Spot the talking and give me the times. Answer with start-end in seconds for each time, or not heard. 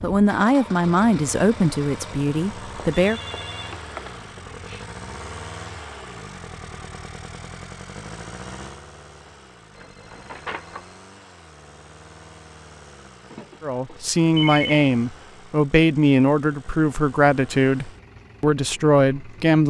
0.0-3.2, 13.6-19.6.